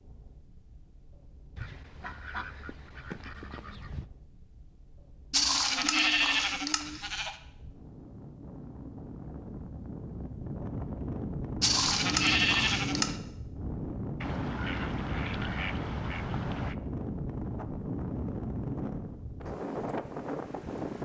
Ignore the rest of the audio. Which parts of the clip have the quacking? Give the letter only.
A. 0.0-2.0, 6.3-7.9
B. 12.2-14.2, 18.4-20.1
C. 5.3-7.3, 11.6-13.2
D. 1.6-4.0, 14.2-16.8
D.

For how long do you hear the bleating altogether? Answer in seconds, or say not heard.
4 s.